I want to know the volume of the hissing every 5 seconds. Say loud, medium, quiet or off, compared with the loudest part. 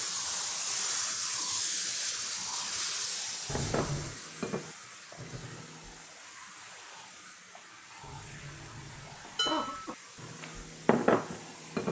loud, quiet, quiet.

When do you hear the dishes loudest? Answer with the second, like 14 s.
11 s.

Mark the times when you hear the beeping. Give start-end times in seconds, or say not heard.
not heard.